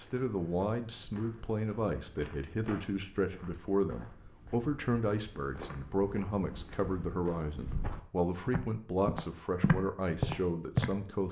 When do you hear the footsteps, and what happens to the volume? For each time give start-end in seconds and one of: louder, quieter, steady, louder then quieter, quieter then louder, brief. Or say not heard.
0.0-11.2 louder.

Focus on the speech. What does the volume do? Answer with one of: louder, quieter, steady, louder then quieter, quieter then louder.
steady.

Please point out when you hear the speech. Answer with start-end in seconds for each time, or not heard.
0.0-11.2.